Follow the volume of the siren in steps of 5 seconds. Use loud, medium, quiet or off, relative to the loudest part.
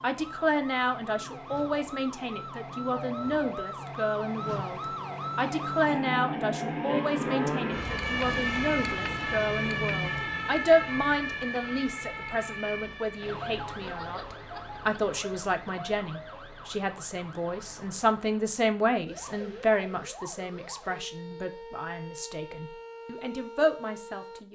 medium, loud, medium, quiet, quiet.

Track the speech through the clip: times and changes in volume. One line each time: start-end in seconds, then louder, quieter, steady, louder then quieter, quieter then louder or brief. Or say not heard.
0.0-24.5 steady.